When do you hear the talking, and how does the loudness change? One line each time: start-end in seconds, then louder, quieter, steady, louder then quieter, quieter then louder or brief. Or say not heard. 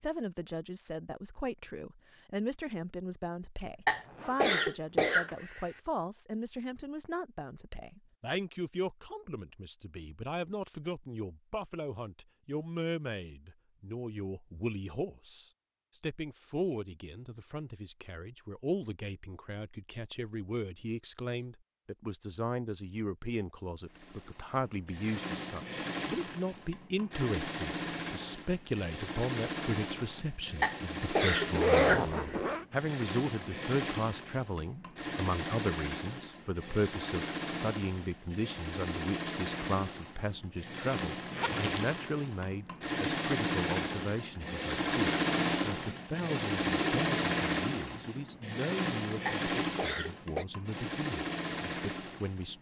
0.0-52.5 steady.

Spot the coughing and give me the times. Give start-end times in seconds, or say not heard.
3.9-5.8, 30.6-32.4, 49.2-50.5.